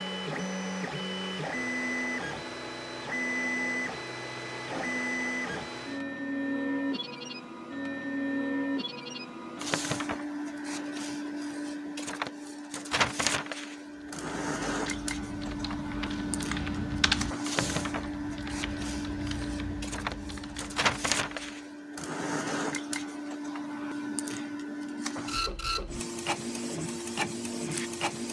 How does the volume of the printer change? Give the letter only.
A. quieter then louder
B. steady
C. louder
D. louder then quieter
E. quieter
B.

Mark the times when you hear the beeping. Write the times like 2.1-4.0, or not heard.
not heard.